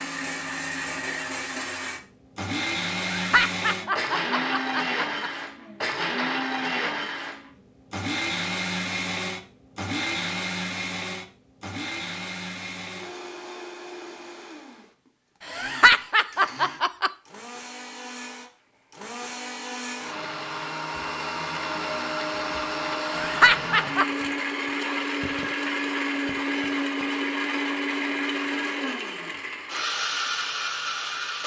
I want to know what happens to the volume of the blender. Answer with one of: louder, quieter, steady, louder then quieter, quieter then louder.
quieter then louder.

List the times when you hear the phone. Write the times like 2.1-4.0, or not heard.
not heard.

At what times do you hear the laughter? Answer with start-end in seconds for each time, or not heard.
3.1-5.3, 15.4-17.1, 23.1-24.1.